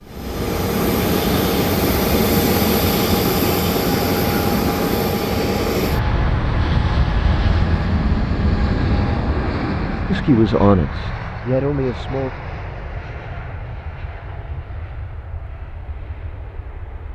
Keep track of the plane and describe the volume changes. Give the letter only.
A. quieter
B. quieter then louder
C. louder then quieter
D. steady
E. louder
A.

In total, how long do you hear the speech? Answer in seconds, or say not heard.
2 s.